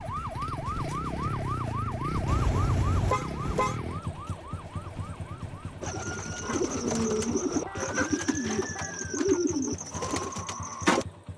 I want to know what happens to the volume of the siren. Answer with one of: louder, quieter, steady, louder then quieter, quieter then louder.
quieter.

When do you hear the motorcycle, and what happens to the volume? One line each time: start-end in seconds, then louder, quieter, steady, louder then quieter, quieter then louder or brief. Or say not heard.
0.0-11.3 quieter.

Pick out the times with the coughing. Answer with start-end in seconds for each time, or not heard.
not heard.